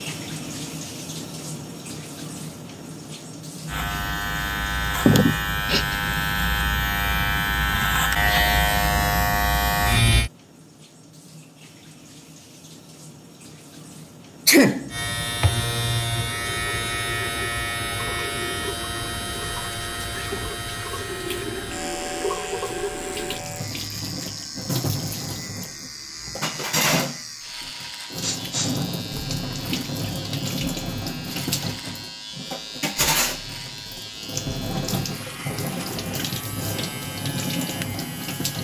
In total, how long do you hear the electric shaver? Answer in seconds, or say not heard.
30 s.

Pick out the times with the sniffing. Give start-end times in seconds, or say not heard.
5.0-6.0, 14.4-14.9, 28.2-28.8.